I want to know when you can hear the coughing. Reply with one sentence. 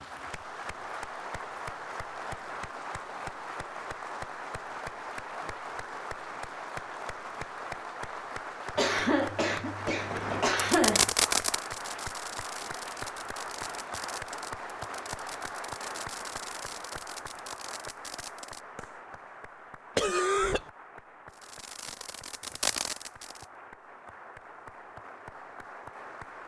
You can hear the coughing from 8.8 to 11.1 s and from 19.9 to 20.6 s.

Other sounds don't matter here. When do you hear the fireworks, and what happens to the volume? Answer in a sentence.
The fireworks can be heard from 9.8 to 19.1 s, getting quieter; and briefly from 21.3 to 23.4 s.